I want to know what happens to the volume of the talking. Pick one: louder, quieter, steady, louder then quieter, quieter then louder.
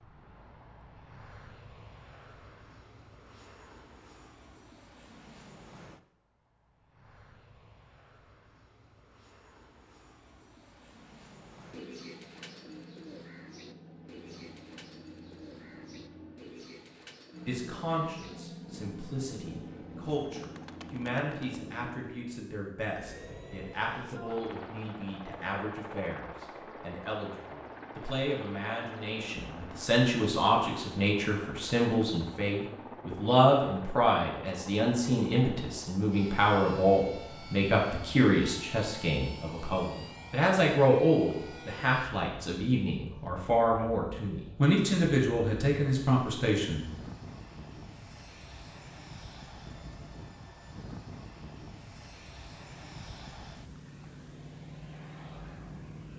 louder.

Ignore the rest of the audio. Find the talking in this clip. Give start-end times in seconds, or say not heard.
17.4-46.9.